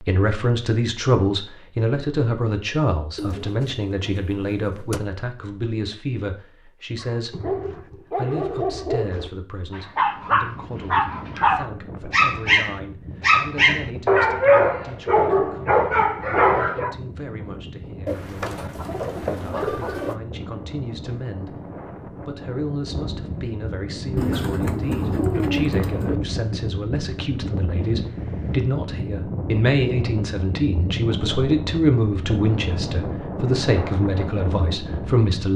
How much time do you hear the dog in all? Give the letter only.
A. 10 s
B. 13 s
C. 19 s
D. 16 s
A.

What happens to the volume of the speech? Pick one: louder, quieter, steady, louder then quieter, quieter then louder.
quieter then louder.